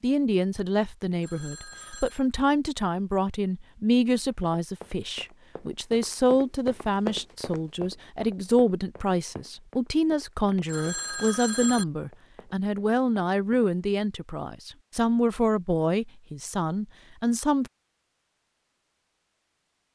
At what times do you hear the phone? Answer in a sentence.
You can hear the phone from 1.1 to 2.2 s and from 10.6 to 11.8 s.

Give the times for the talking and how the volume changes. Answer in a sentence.
You can hear the talking from 0.0 to 17.7 s, at a steady volume.